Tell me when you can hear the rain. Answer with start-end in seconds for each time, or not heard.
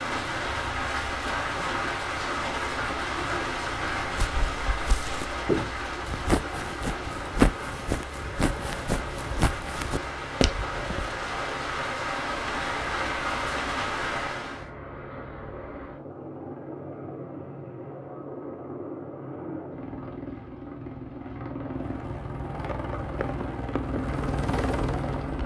0.0-14.7.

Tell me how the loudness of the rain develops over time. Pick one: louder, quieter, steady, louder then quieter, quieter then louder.
quieter then louder.